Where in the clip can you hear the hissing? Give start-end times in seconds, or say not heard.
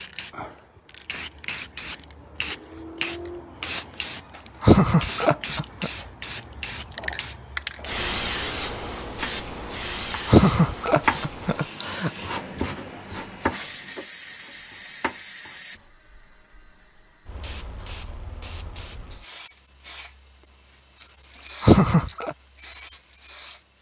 0.0-23.7.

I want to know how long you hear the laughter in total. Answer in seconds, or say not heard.
4 s.